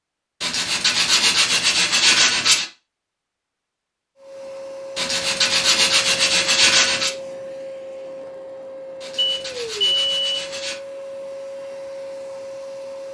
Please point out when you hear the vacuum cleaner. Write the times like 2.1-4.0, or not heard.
4.2-13.0.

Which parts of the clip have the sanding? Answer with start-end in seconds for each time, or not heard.
0.4-2.6, 5.0-7.1, 9.0-10.8.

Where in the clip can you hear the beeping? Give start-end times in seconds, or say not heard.
9.2-10.4.